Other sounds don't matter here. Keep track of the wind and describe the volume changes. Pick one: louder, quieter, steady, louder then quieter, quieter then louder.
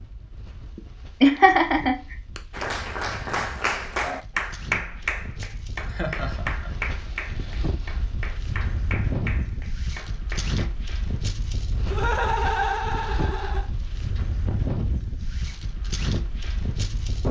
louder.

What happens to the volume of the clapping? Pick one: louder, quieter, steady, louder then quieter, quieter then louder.
quieter.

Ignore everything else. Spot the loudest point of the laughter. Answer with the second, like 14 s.
1 s.